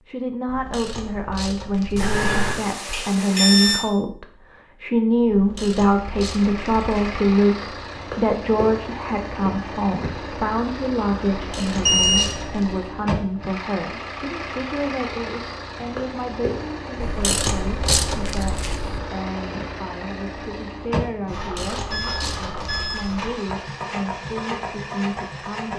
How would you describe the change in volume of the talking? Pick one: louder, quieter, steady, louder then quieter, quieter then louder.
quieter.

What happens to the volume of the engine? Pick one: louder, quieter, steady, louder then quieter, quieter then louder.
steady.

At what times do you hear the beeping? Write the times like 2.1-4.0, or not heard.
1.9-3.9, 11.8-12.3, 21.9-23.1.